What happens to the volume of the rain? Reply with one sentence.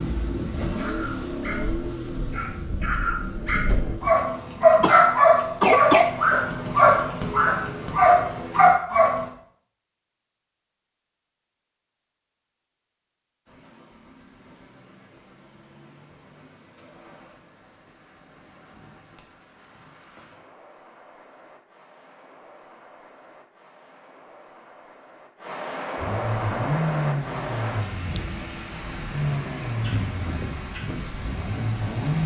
The volume of the rain goes up.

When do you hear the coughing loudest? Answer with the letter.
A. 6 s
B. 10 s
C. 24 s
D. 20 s
A.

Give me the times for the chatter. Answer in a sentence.
You can't hear the chatter here.